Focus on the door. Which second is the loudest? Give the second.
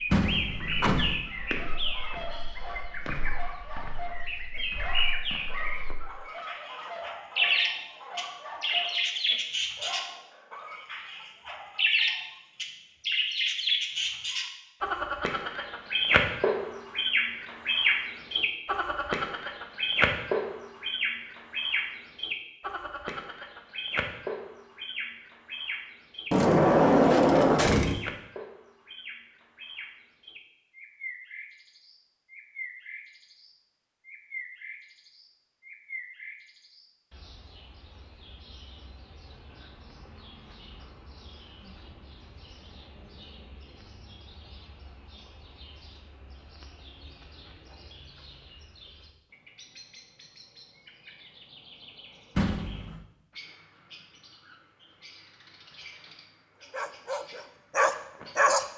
27 s.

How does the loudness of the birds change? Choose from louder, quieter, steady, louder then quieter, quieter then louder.
quieter.